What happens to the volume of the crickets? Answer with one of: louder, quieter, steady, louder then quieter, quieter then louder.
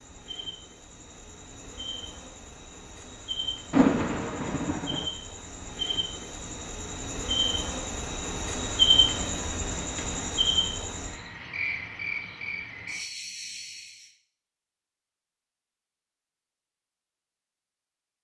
louder then quieter.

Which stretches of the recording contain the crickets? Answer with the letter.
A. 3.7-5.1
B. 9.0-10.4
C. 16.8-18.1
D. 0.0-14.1
D.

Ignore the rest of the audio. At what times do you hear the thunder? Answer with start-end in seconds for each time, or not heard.
3.7-5.1.